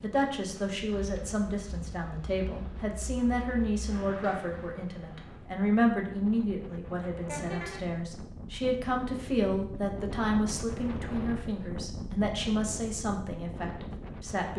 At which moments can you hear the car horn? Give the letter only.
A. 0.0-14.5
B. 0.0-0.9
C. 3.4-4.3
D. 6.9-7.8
D.